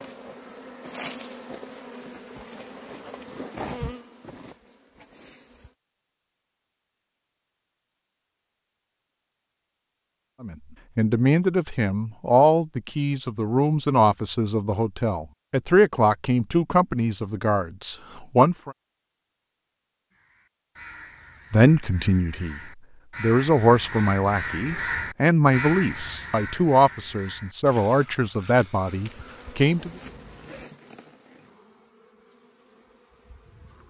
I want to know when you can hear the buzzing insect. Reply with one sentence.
The buzzing insect can be heard from 0.0 to 5.8 s and from 28.8 to 33.8 s.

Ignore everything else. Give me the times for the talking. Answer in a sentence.
The talking can be heard from 10.4 to 18.8 s, from 21.5 to 22.6 s and from 23.2 to 29.9 s.